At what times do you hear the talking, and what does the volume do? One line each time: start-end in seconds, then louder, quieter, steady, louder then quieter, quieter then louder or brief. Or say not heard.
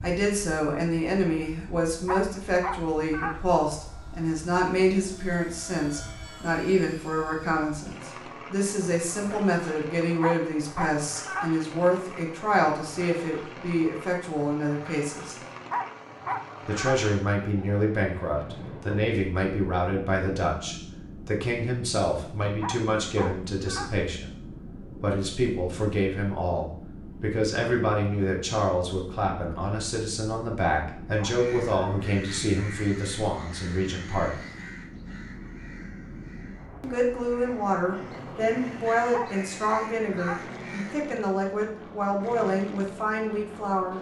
0.0-15.3 steady
16.6-34.4 steady
36.8-43.9 steady.